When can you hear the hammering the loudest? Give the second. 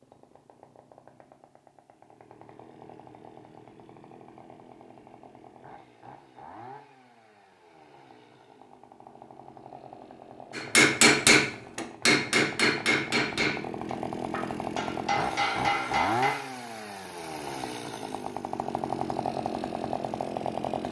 11 s.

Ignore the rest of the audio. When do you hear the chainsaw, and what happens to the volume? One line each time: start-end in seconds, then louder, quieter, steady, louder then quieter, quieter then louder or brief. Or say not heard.
0.0-20.8 louder.